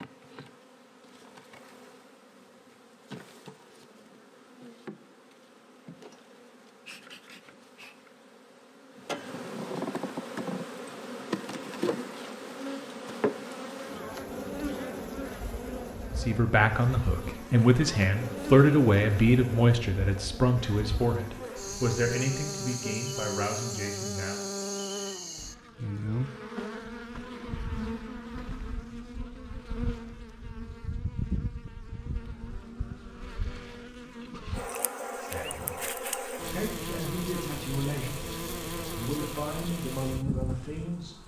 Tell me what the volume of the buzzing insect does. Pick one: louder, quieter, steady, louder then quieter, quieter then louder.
louder.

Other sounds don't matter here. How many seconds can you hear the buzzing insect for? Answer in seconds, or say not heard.
41 s.